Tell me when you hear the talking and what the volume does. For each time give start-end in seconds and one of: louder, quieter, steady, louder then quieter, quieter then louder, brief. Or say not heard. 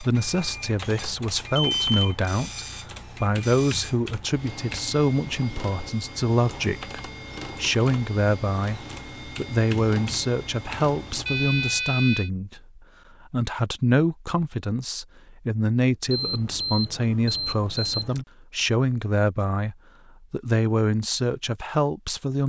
0.0-22.4 steady.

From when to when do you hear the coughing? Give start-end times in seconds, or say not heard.
not heard.